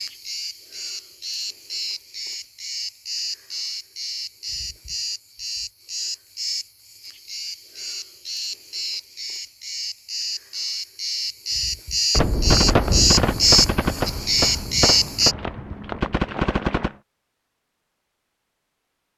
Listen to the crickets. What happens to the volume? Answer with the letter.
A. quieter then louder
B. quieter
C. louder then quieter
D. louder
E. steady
D.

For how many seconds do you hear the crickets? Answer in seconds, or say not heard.
15 s.